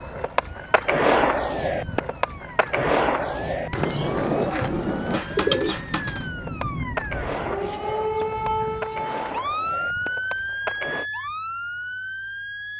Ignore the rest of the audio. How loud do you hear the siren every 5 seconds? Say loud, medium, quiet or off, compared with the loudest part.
medium, loud, loud.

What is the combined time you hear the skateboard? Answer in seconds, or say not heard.
11 s.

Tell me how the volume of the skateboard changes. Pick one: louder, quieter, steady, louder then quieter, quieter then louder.
quieter.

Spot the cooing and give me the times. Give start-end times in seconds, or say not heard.
3.9-5.8.